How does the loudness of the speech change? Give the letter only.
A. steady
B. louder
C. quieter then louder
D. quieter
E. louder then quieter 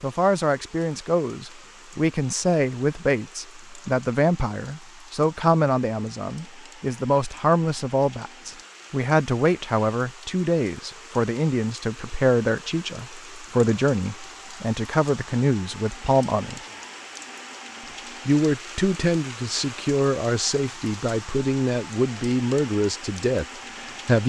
A.